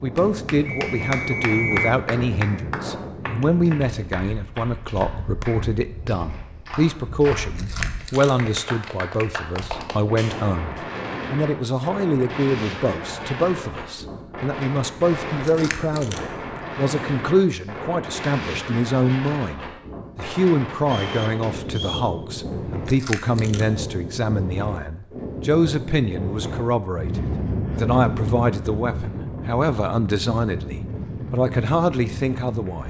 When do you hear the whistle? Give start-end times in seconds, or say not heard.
0.7-1.9, 20.8-22.1.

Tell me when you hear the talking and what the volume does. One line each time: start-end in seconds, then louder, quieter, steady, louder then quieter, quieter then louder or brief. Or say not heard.
0.0-32.8 steady.